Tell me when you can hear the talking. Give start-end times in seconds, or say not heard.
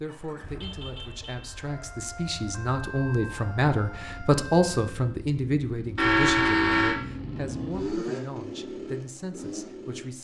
0.0-10.1.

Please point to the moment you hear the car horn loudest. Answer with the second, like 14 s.
6 s.